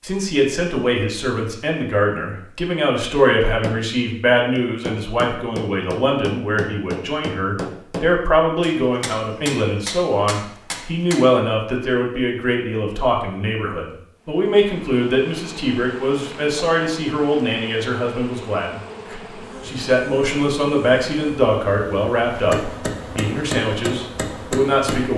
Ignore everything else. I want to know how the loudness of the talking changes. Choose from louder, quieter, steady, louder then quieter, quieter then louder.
steady.